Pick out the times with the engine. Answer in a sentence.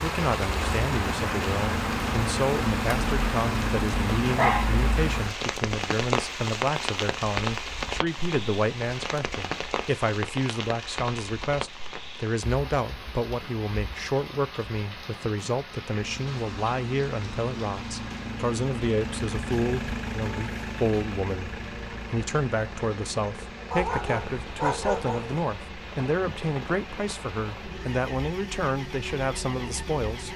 The engine can be heard from 0.0 to 5.3 s and from 15.8 to 30.3 s.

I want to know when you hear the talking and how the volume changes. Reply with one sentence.
The talking can be heard from 0.0 to 30.3 s, at a steady volume.